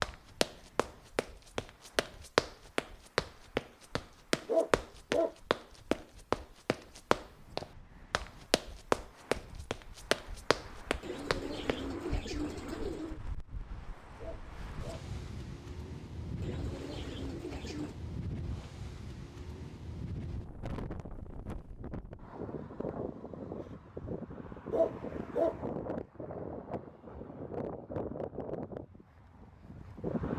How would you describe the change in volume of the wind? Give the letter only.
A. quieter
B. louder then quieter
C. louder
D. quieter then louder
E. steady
C.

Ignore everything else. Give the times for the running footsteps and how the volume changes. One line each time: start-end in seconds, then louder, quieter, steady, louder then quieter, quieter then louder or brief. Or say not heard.
0.0-11.8 steady.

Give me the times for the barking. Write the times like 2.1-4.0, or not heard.
4.5-5.3, 14.2-15.1, 24.7-25.6.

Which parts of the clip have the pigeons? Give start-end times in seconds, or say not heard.
11.0-13.2, 16.4-18.0.